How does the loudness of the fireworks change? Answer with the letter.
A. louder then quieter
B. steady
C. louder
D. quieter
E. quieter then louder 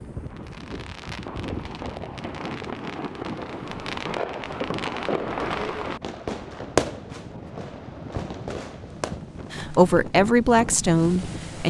A.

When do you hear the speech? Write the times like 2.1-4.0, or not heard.
9.5-11.6.